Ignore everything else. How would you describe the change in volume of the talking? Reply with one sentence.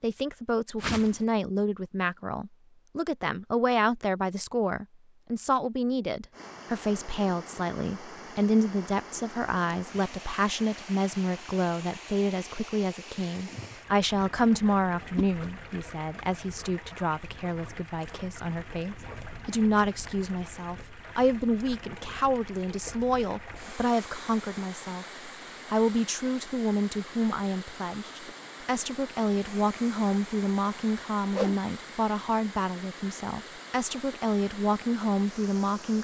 The loudness of the talking stays about the same.